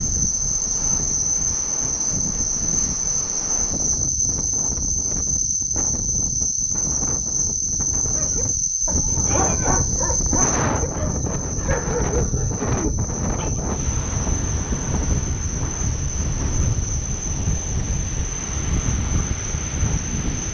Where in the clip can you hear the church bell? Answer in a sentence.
You can't hear the church bell here.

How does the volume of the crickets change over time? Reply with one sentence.
The loudness of the crickets goes down.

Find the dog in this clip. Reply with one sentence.
You can hear the dog from 8.0 to 13.6 s.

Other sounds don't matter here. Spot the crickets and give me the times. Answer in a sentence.
The crickets can be heard from 0.0 to 20.4 s.